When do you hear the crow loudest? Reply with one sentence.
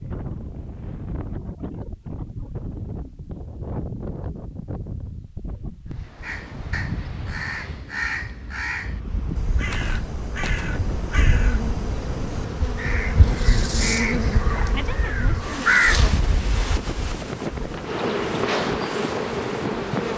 The loudest moment of the crow is at 16 seconds.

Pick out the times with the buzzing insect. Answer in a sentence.
The buzzing insect can be heard from 9.0 to 20.1 s.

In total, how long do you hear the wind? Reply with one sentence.
The wind can be heard for 20 seconds in total.